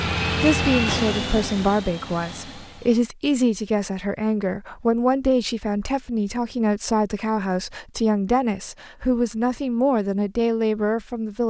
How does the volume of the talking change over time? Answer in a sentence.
The volume of the talking stays about the same.